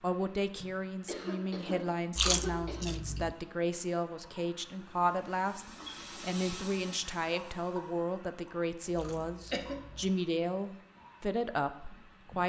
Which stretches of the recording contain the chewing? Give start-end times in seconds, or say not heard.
2.1-3.4, 8.9-10.1.